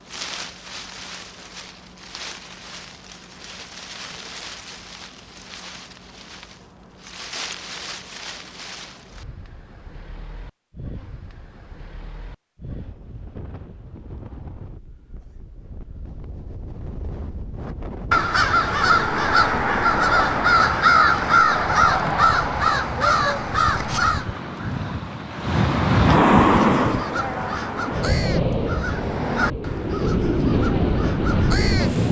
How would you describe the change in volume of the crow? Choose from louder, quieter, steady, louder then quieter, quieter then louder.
quieter.